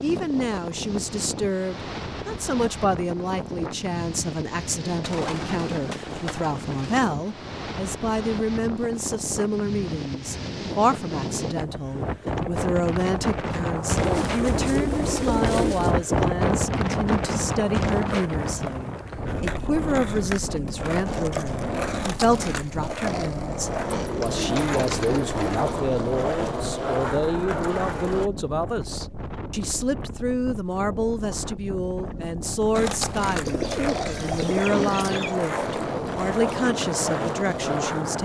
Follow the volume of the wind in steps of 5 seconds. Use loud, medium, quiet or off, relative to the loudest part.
medium, medium, loud, loud, medium, medium, medium, medium.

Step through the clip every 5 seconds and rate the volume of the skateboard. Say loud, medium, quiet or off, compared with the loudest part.
off, off, off, medium, loud, loud, loud, loud.